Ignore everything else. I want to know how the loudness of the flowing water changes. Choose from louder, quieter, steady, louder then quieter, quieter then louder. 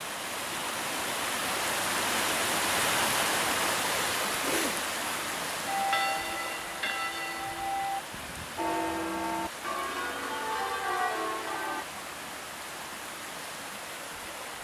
quieter.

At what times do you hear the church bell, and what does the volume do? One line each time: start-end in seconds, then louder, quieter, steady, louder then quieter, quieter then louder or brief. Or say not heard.
5.7-11.8 steady.